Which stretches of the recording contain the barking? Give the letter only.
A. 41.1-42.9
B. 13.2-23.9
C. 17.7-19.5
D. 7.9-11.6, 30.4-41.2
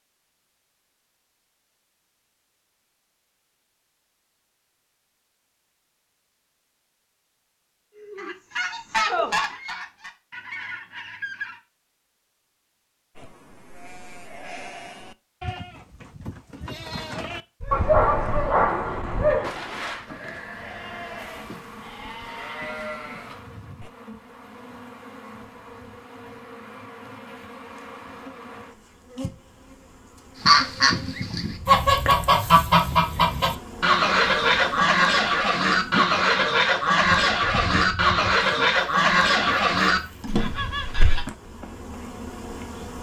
C.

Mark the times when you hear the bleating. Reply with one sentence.
The bleating can be heard from 13.2 to 23.9 s.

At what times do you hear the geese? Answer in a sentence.
You can hear the geese from 7.9 to 11.6 s and from 30.4 to 41.2 s.